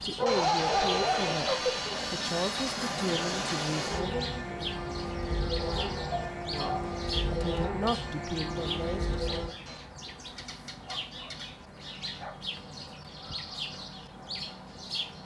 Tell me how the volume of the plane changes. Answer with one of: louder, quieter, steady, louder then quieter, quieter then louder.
steady.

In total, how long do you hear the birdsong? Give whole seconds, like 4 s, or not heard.
15 s.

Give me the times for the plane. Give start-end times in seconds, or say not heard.
0.1-9.8.